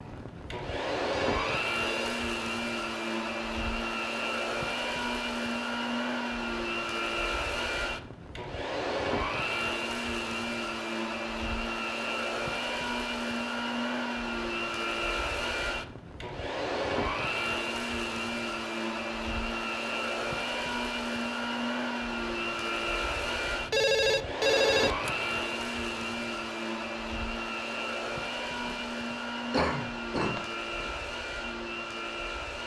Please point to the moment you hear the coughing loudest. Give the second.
30 s.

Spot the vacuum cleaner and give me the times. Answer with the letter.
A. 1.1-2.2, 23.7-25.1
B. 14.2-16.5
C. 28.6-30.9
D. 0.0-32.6
D.